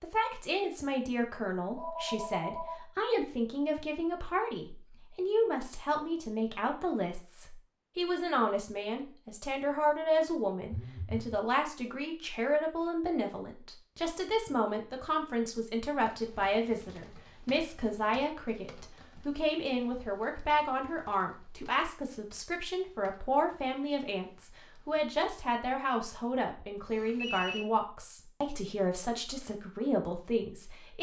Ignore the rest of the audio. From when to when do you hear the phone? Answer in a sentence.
The phone can be heard from 1.8 to 2.9 s, from 10.7 to 11.3 s and from 26.9 to 27.6 s.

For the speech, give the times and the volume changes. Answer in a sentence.
The speech can be heard from 0.0 to 30.9 s, at a steady volume.